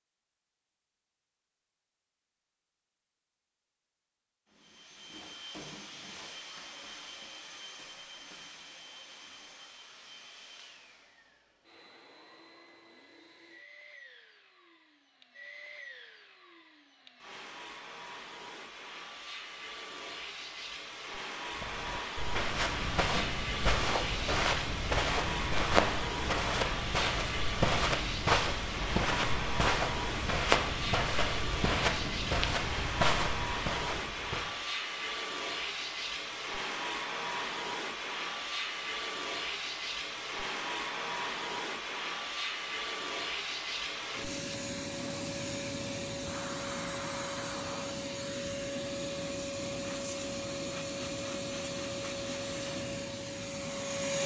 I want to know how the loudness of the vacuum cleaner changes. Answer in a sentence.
The volume of the vacuum cleaner goes up.